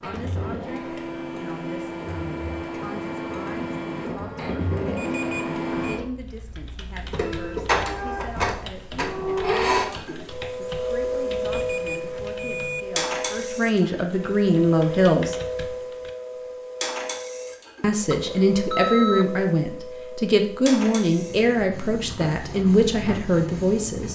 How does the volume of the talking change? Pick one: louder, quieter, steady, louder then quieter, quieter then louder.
louder.